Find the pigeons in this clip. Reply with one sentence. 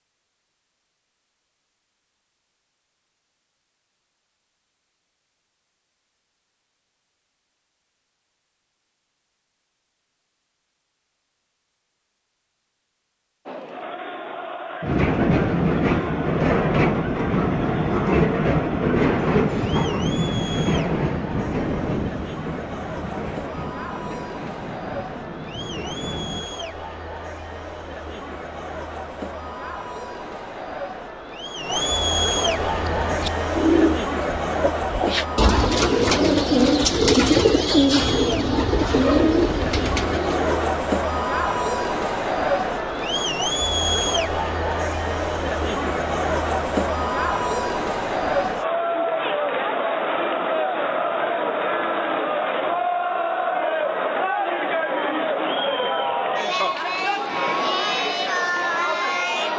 You can hear the pigeons from 32.4 to 40.7 s.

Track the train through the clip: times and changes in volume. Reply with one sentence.
The train can be heard from 14.8 to 26.4 s, getting quieter.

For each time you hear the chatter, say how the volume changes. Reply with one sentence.
You can hear the chatter from 13.4 to 59.5 s, getting louder.